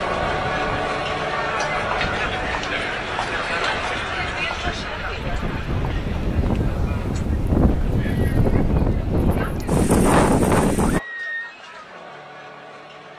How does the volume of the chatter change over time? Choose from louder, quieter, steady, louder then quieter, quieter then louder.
quieter.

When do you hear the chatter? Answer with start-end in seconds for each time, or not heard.
0.0-13.1.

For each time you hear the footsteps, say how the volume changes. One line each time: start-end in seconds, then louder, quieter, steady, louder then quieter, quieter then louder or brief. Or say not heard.
not heard.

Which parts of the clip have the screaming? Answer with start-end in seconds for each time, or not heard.
10.8-11.6.